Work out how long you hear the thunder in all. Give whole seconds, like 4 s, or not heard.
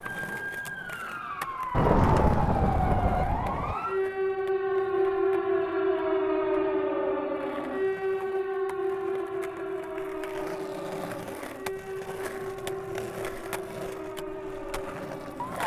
2 s.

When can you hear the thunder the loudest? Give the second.
2 s.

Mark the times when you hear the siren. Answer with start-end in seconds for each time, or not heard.
0.0-15.6.